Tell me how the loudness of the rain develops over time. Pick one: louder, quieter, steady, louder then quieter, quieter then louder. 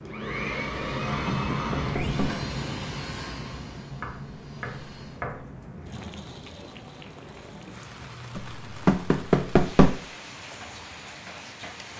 quieter.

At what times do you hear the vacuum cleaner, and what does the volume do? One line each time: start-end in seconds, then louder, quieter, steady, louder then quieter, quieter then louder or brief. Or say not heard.
0.0-5.3 quieter.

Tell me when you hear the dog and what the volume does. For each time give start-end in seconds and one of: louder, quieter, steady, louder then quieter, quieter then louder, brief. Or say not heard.
not heard.